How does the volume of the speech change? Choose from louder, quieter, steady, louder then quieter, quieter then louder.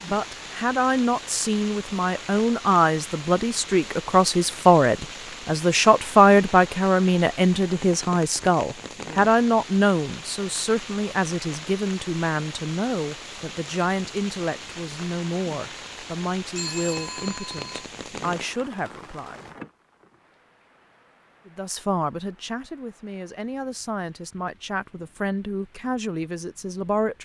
quieter.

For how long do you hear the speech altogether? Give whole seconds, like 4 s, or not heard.
25 s.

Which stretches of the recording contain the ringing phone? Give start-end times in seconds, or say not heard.
16.6-17.9.